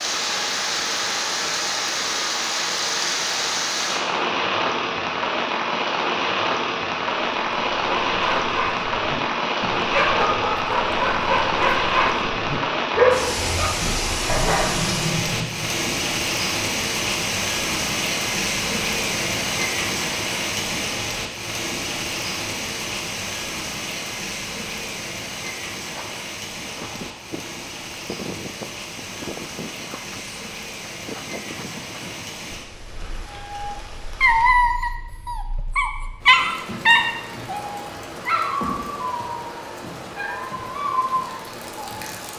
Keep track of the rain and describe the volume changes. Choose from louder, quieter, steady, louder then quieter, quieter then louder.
quieter.